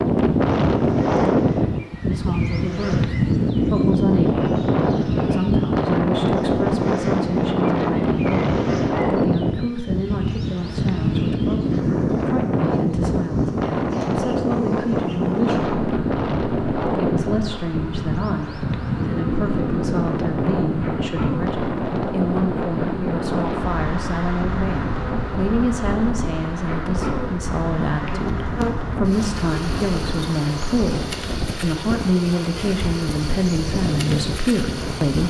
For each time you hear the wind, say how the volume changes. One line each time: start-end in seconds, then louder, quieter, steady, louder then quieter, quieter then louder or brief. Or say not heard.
0.0-35.2 quieter.